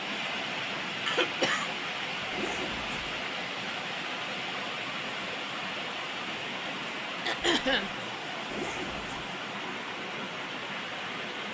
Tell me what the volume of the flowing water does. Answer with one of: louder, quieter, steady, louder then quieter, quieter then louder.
steady.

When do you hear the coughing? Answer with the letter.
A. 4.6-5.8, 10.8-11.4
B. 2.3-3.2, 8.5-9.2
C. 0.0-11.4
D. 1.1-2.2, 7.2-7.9
D.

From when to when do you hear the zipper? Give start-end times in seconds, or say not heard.
2.3-3.2, 8.5-9.2.